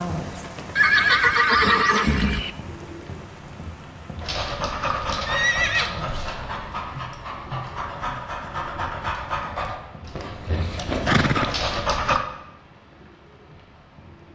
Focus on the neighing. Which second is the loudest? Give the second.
1 s.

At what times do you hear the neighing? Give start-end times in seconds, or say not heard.
0.8-2.5, 5.2-6.0, 11.1-12.0.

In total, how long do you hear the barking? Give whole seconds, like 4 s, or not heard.
8 s.